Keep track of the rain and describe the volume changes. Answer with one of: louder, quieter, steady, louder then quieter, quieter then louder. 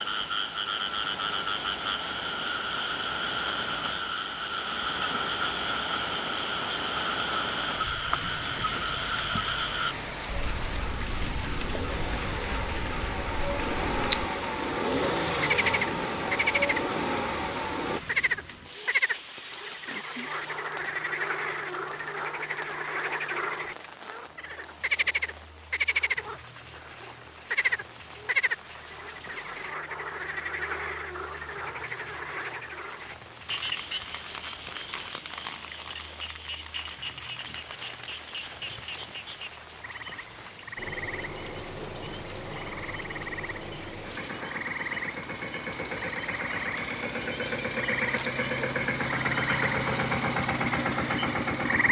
quieter.